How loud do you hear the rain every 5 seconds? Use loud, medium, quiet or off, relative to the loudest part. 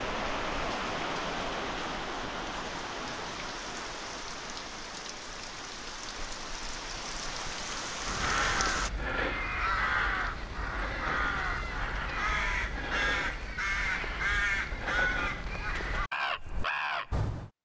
loud, loud, off, off.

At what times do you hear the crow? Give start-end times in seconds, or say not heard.
8.1-17.5.